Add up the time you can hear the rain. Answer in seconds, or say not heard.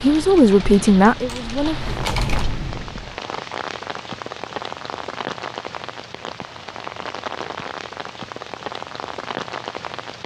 10 s.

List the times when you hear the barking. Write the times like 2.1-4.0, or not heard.
not heard.